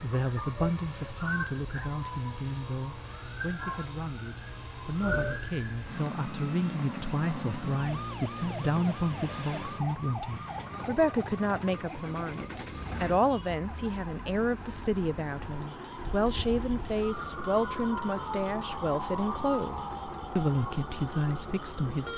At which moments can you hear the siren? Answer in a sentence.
You can hear the siren from 0.0 to 22.1 s.